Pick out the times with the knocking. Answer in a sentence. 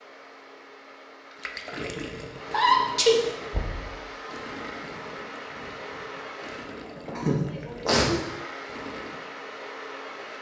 The knocking can be heard from 3.5 to 4.0 s.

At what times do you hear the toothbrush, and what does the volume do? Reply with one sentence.
The toothbrush can't be heard in this clip.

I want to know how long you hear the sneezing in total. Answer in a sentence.
The sneezing can be heard for 2 seconds in total.